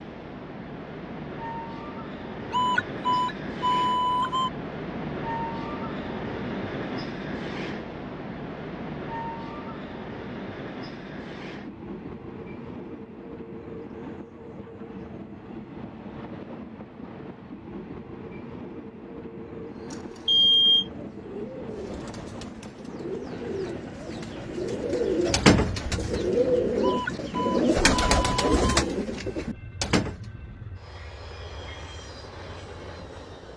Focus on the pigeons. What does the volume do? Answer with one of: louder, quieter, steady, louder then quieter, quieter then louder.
louder.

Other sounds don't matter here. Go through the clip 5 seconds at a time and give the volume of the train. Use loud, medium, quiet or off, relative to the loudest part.
loud, loud, medium, medium, medium, medium, medium.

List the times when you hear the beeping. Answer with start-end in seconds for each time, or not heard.
2.5-4.5, 19.9-20.9, 26.8-28.6.